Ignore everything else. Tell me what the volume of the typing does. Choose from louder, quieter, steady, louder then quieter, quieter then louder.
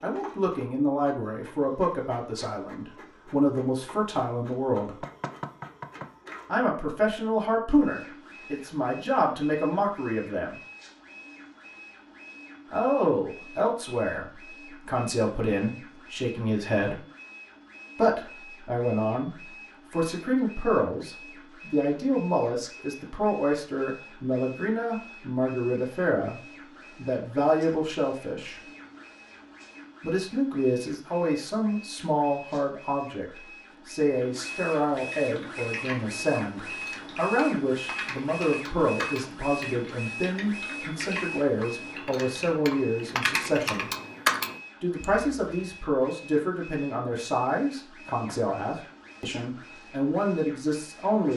louder.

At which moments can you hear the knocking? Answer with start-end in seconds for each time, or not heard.
4.8-6.2, 48.0-48.5.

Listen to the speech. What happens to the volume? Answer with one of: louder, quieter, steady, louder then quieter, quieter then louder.
steady.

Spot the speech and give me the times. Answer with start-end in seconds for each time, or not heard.
0.0-5.0, 6.5-10.6, 12.7-17.0, 17.9-28.6, 30.0-43.9, 44.8-51.3.